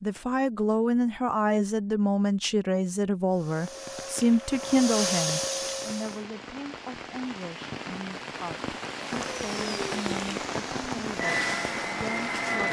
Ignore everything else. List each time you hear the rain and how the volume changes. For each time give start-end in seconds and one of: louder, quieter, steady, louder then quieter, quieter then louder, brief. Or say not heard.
3.5-12.6 louder.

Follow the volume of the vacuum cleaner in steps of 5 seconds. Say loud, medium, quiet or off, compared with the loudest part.
medium, loud, loud.